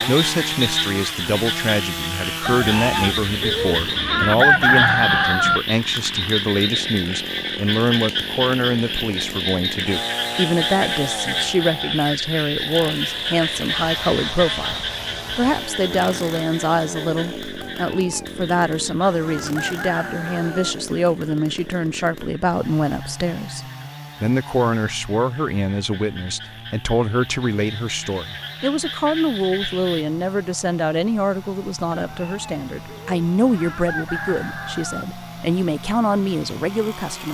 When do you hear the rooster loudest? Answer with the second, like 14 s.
5 s.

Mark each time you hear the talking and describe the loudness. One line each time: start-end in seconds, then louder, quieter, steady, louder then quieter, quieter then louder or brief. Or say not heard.
0.1-37.2 steady.